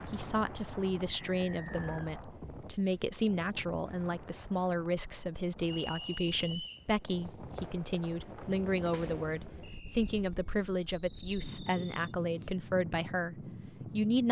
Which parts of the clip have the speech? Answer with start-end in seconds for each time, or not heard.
0.1-14.2.